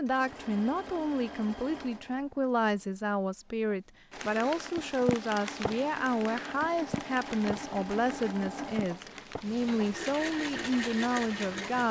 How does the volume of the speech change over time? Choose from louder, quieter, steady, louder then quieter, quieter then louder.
steady.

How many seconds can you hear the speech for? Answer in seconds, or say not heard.
12 s.